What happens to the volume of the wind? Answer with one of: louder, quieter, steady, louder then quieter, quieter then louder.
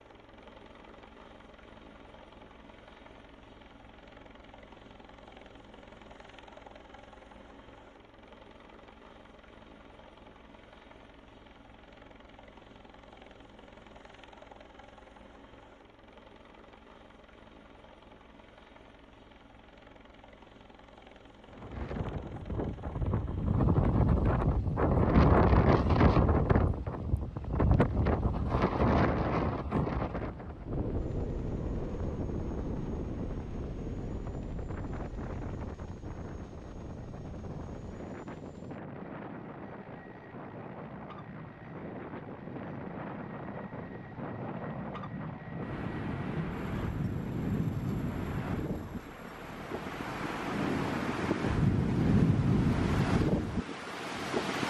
quieter then louder.